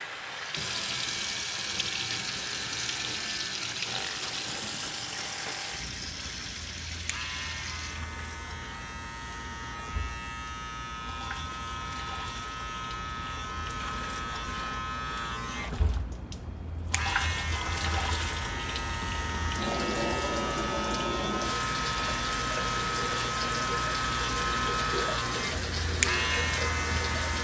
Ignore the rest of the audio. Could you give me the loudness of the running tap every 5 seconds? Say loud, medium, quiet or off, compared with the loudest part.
loud, medium, medium, loud, loud, loud.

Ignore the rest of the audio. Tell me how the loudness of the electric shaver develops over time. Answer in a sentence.
The loudness of the electric shaver goes up.